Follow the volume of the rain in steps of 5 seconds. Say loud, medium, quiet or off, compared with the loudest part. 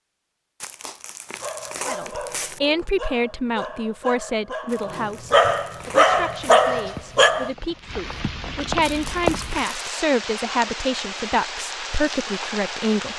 off, loud, loud.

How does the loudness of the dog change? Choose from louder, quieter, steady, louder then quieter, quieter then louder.
louder.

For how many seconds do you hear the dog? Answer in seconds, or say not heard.
6 s.